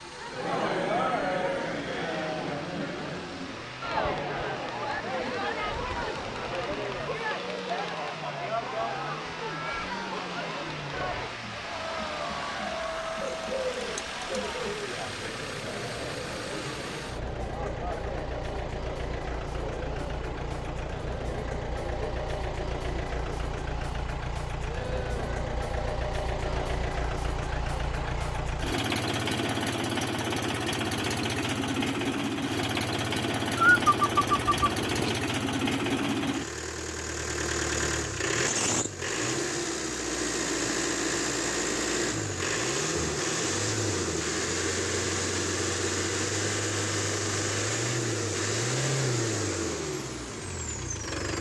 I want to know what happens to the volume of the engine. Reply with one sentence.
The volume of the engine goes up.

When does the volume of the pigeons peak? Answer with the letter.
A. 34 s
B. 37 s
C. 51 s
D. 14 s
A.